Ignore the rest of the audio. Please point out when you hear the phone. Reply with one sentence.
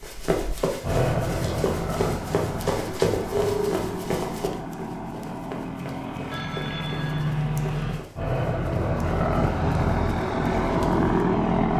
The phone can be heard from 3.3 to 3.8 s and from 6.3 to 7.3 s.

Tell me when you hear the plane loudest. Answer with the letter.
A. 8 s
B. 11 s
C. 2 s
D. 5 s
B.